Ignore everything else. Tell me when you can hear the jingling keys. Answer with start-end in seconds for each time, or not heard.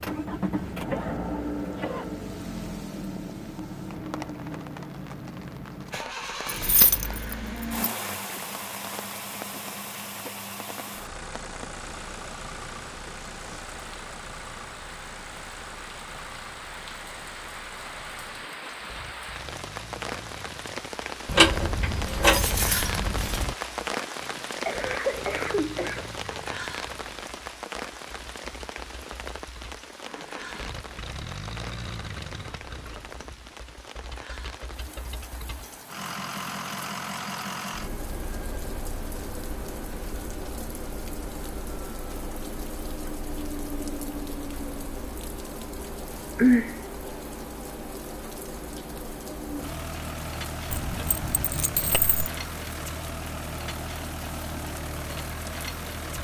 6.5-8.0, 21.2-23.6, 50.7-52.3.